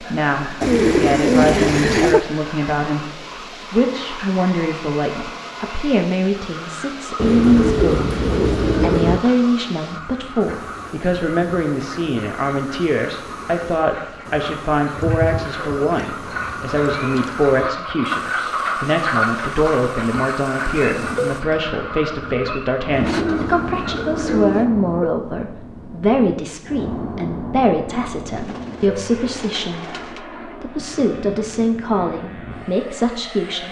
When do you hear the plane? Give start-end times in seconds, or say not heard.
20.8-33.6.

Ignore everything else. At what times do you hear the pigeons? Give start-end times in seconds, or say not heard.
0.6-2.2, 7.2-9.2, 14.9-17.8, 22.9-24.7, 28.4-30.2.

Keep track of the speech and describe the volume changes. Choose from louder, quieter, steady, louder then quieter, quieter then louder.
steady.